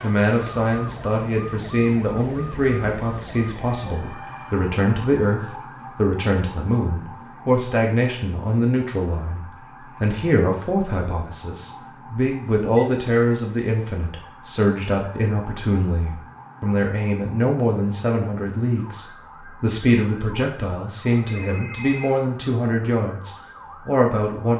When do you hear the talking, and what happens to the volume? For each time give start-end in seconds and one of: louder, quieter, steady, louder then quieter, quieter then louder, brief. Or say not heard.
0.0-24.5 steady.